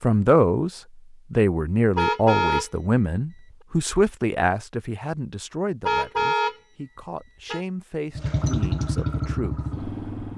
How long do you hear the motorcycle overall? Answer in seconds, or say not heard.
2 s.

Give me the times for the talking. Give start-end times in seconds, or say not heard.
0.0-9.7.